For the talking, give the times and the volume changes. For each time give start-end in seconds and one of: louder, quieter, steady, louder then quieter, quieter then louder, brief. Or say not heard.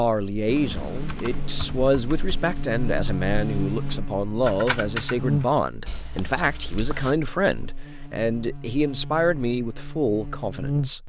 0.0-11.0 steady.